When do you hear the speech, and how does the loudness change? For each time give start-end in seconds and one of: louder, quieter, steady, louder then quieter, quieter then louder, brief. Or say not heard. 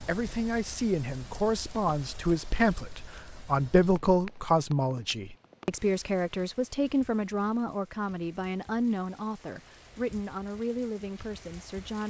0.1-12.0 quieter.